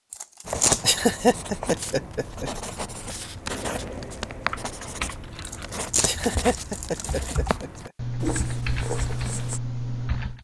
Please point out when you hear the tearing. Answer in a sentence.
The tearing can be heard from 0.1 to 1.0 s and from 5.5 to 7.3 s.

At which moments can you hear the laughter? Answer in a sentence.
The laughter can be heard from 0.8 to 2.5 s and from 6.0 to 7.9 s.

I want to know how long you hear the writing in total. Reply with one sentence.
You can hear the writing for 9 seconds altogether.